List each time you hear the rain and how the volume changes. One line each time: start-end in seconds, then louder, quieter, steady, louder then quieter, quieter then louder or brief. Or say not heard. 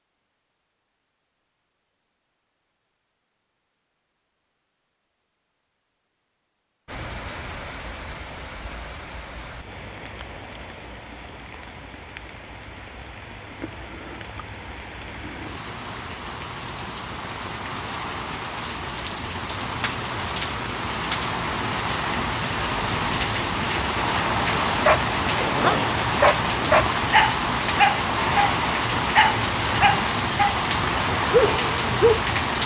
6.8-32.6 louder.